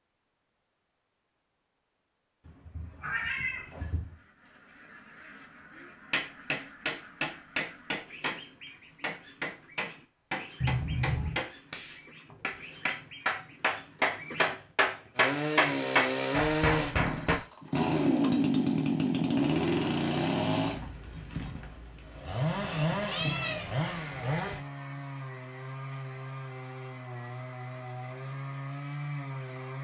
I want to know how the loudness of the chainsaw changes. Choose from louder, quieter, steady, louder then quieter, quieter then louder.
quieter.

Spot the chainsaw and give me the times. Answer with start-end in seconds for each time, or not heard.
15.2-29.7.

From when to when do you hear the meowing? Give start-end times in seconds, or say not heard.
2.5-4.2, 10.6-11.4, 23.1-23.7.